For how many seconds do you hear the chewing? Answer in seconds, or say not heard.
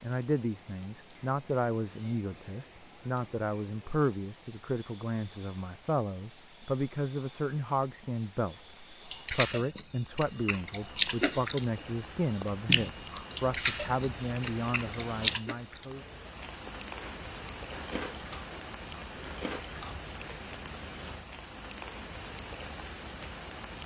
11 s.